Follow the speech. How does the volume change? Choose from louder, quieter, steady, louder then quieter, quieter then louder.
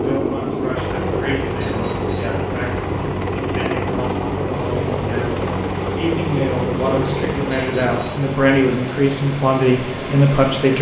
louder.